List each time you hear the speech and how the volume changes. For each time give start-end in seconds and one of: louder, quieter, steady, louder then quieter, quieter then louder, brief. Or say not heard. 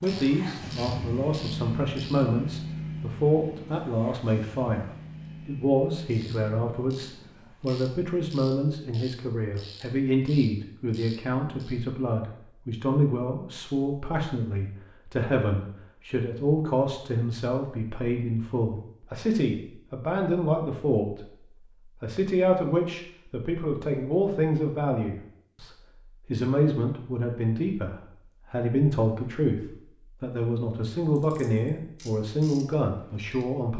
0.0-21.2 steady
22.0-33.7 steady.